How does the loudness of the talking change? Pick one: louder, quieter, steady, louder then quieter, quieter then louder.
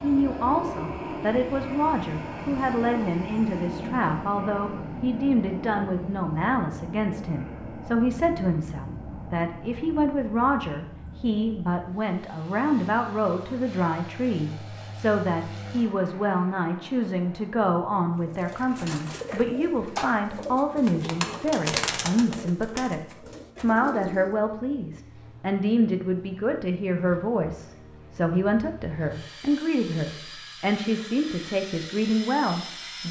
steady.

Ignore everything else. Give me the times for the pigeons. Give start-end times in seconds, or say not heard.
18.2-24.4.